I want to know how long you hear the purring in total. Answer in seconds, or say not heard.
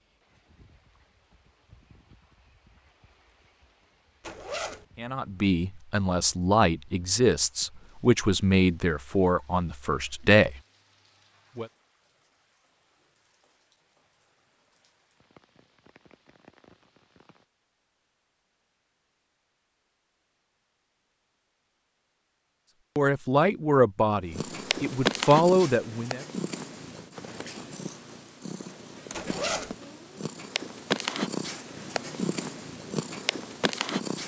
10 s.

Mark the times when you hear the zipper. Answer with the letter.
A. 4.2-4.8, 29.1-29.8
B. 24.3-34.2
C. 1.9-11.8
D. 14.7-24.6
A.